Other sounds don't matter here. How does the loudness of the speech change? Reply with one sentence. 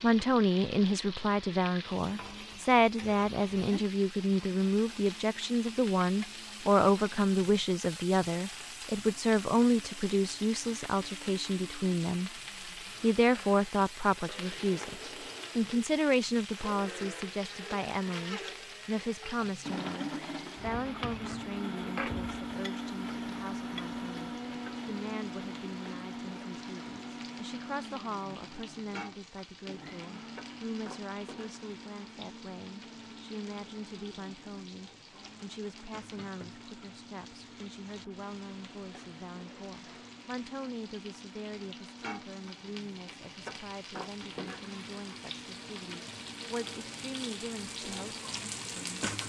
The volume of the speech goes down.